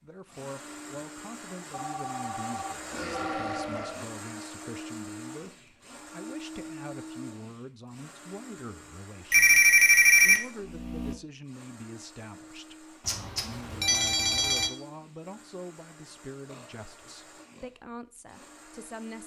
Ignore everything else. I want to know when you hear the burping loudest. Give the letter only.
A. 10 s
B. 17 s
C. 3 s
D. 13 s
C.